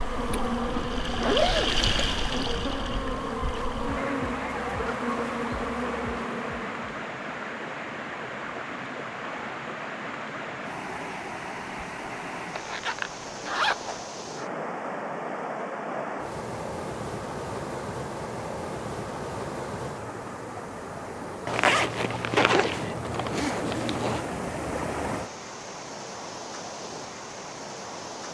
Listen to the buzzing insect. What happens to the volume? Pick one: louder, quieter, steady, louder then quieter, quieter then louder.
steady.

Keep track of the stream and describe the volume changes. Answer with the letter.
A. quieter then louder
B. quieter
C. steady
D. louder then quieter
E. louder
C.